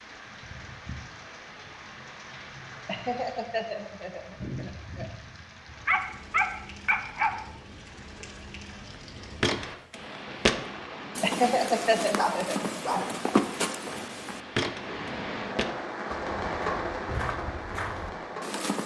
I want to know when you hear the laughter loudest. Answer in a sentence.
The volume of the laughter peaks at 12 seconds.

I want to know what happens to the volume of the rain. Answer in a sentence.
The loudness of the rain goes up.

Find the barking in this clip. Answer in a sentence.
The barking can be heard from 5.8 to 7.3 s and from 12.2 to 13.2 s.